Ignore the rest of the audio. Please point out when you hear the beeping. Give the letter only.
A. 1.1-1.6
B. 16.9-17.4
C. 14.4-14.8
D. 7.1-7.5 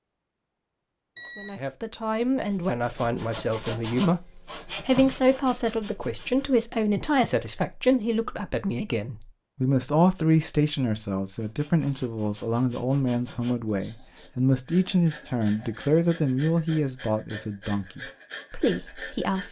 A.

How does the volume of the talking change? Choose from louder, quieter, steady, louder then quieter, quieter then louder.
steady.